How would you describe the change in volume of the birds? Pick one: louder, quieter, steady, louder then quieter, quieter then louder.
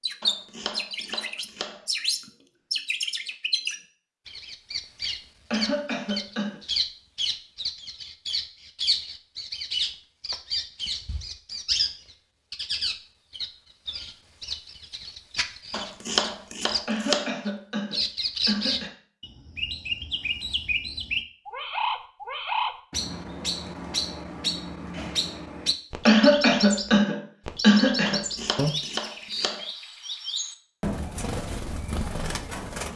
steady.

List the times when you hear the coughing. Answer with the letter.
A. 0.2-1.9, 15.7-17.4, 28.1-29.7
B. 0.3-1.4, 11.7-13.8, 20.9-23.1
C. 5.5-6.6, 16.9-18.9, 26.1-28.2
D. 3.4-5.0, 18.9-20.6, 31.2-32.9
C.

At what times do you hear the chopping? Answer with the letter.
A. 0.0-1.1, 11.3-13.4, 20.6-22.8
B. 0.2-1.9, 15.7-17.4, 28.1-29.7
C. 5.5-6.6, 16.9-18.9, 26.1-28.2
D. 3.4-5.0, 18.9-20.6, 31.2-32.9
B.